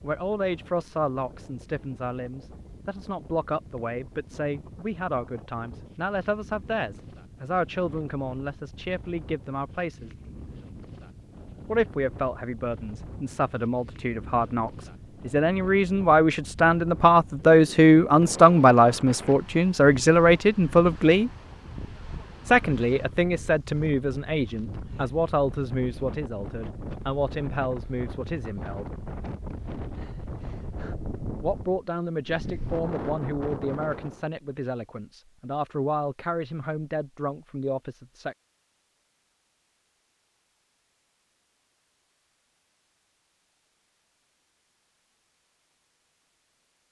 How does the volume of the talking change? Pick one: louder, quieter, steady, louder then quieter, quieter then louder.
louder then quieter.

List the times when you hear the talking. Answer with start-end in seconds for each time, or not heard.
0.0-10.1, 11.7-21.3, 22.4-28.9, 31.4-38.4.